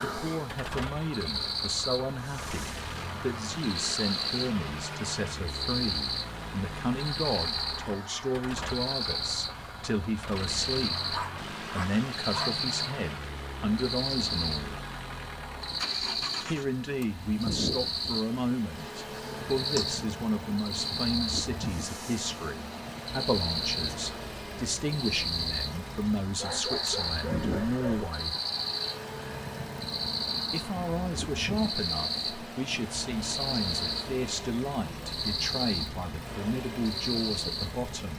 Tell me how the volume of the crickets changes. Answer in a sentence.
The volume of the crickets stays about the same.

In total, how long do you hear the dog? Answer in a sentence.
The dog can be heard for 3 seconds in total.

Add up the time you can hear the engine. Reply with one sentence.
You can hear the engine for 38 seconds altogether.